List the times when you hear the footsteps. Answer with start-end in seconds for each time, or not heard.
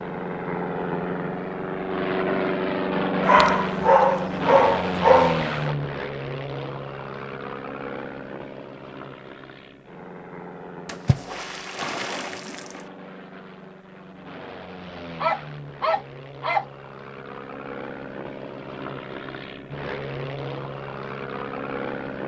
not heard.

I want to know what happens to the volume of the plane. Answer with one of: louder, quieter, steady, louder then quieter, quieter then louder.
quieter then louder.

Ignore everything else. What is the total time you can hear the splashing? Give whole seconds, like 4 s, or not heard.
2 s.